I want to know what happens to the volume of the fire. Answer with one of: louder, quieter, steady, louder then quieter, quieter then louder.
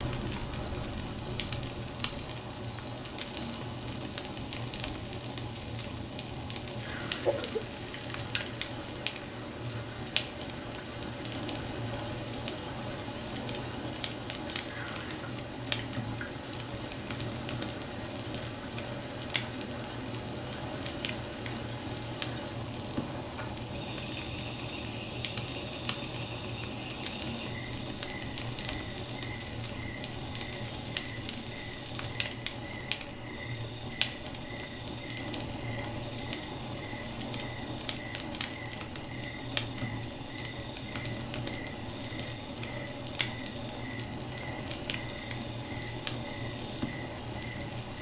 steady.